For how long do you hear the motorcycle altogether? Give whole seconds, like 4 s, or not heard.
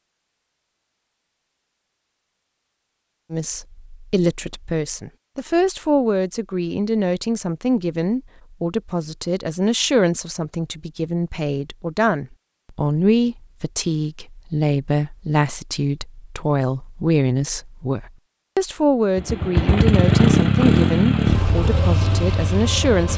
4 s.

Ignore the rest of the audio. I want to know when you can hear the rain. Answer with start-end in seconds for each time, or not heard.
not heard.